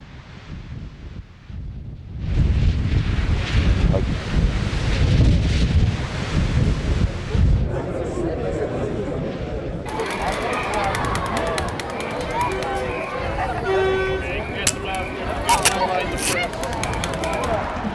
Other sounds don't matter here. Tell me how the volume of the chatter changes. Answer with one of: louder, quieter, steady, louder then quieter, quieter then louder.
louder.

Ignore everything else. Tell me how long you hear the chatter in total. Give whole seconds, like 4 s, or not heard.
15 s.